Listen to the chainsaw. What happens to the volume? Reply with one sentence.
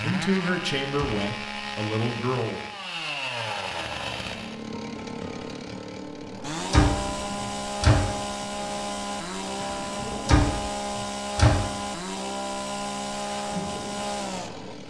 The volume of the chainsaw stays about the same.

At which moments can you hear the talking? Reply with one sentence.
You can hear the talking from 0.0 to 2.6 s.